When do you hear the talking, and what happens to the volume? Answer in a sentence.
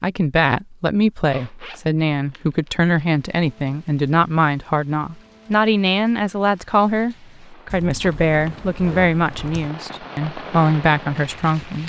You can hear the talking from 0.0 to 11.8 s, at a steady volume.